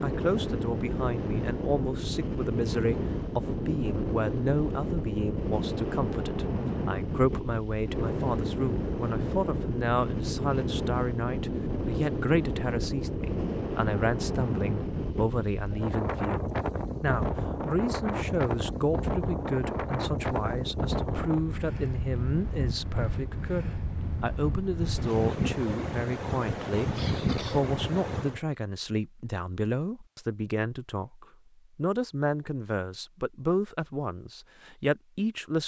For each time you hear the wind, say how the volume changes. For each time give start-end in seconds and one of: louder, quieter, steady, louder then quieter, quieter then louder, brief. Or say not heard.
0.0-28.4 steady.